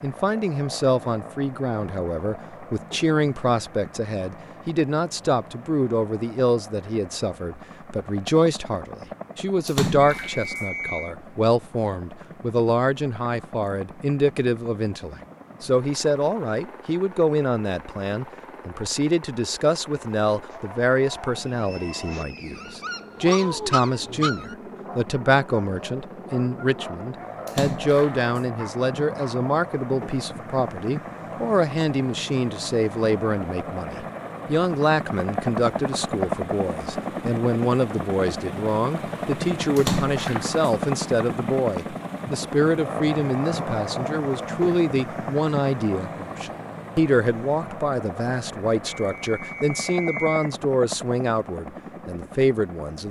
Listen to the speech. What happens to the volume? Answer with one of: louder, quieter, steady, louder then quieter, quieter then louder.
steady.